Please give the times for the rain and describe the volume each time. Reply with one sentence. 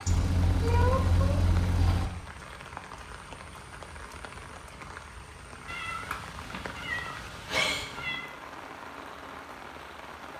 The rain can be heard from 0.0 to 10.3 s, at a steady volume.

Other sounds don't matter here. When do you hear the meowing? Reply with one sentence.
You can hear the meowing from 0.1 to 2.1 s and from 5.7 to 8.2 s.